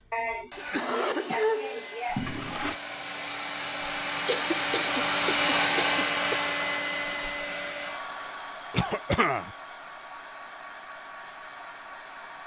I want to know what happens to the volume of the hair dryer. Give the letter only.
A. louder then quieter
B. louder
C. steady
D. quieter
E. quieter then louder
A.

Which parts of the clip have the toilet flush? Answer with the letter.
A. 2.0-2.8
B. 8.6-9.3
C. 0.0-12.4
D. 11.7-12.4
A.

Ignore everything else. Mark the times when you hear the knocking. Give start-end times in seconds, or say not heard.
not heard.